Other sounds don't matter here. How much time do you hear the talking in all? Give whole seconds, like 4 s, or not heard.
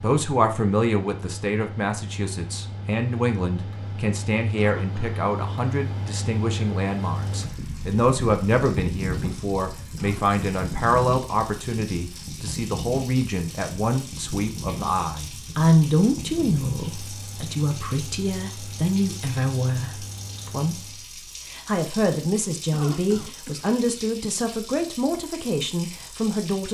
26 s.